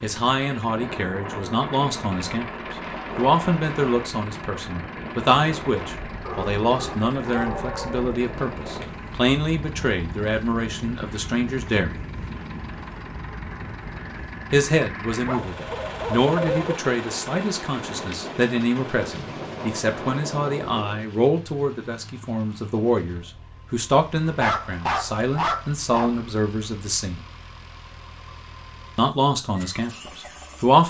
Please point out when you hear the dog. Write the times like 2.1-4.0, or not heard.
6.2-8.1, 15.2-16.8, 24.4-26.2.